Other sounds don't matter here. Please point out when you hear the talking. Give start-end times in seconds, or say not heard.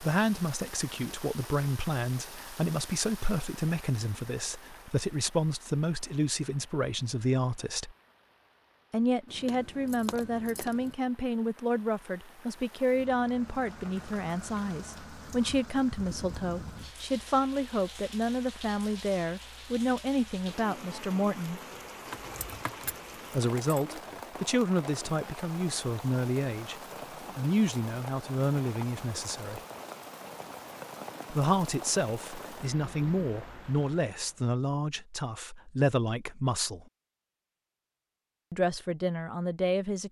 0.0-8.0, 8.9-21.6, 23.3-29.6, 31.3-36.9, 38.5-40.0.